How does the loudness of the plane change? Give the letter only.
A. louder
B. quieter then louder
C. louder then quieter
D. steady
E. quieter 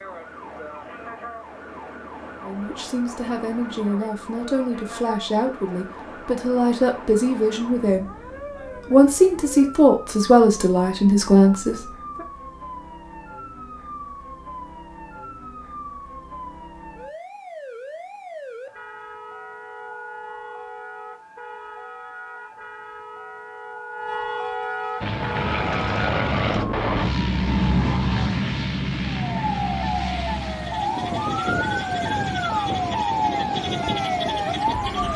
E.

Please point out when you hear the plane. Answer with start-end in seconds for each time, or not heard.
25.0-35.1.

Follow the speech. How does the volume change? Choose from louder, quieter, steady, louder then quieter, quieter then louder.
louder.